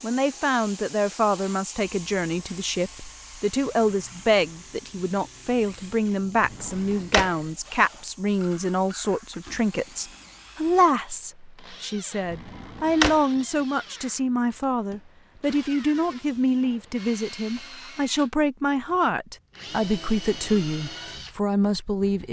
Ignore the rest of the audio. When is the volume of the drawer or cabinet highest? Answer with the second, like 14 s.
13 s.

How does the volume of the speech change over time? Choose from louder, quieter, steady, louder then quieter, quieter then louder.
steady.